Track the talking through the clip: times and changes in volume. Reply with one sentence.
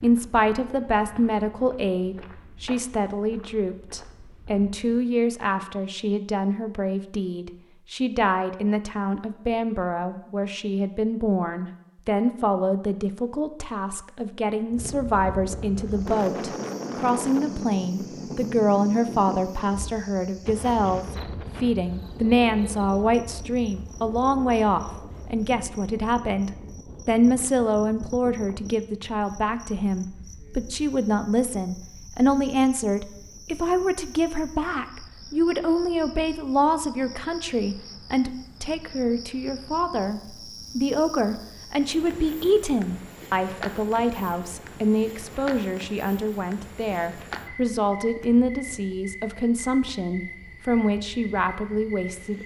The talking can be heard from 0.0 to 52.4 s, at a steady volume.